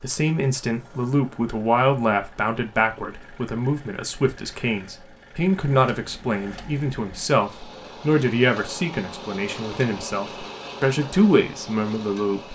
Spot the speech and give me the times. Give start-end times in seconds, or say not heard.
0.0-12.4.